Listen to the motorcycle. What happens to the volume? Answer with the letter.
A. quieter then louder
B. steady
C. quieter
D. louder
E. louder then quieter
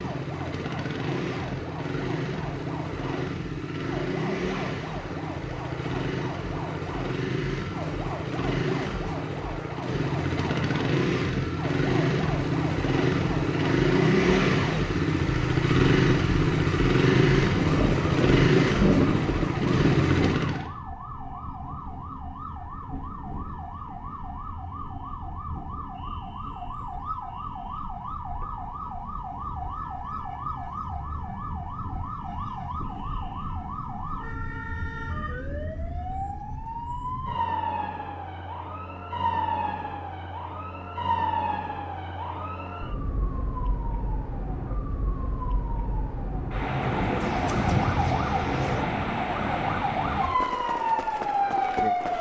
D.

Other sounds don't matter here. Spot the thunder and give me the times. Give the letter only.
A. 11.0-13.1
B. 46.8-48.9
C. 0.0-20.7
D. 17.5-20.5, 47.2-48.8
D.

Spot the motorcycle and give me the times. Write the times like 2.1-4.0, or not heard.
0.0-20.7.